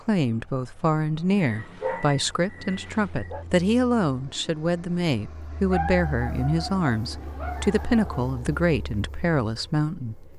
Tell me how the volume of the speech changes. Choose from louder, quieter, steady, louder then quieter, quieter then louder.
steady.